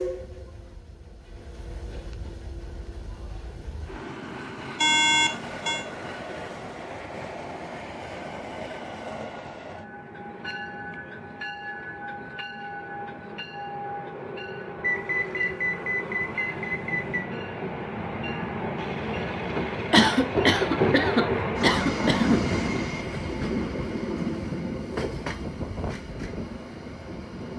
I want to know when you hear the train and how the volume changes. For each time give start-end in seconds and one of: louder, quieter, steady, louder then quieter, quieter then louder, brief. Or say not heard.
0.0-27.5 louder.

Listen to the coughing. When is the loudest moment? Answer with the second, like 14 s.
20 s.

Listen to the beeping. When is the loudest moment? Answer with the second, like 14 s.
5 s.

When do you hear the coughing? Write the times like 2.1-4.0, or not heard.
19.9-22.4.